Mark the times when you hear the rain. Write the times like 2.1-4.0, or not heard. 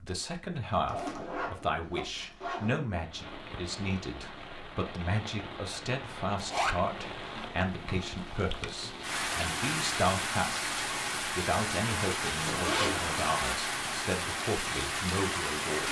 3.0-15.8.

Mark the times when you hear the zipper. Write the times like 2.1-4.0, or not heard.
0.8-2.7, 6.3-6.8, 12.4-13.2.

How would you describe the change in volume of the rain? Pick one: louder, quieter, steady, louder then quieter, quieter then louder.
louder.